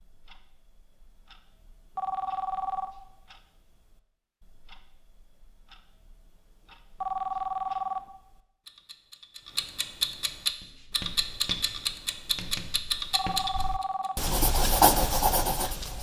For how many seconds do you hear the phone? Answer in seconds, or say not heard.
3 s.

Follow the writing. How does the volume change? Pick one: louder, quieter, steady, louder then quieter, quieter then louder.
louder.